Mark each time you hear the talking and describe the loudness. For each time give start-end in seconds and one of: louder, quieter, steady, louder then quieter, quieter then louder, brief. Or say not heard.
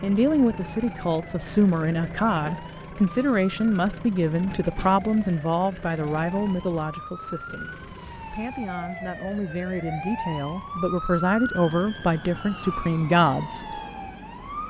0.0-13.8 quieter then louder.